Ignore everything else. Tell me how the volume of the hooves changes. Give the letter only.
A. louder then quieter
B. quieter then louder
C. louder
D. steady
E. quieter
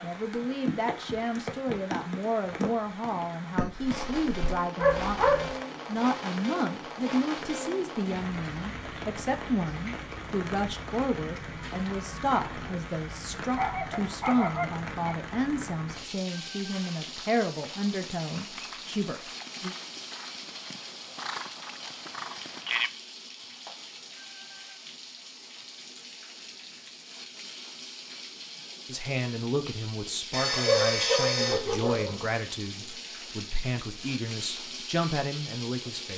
C.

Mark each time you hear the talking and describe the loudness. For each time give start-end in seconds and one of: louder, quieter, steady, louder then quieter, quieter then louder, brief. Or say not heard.
0.0-19.8 steady
28.9-36.1 steady.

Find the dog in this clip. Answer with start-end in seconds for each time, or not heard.
3.5-5.5, 13.6-15.2, 30.3-32.2.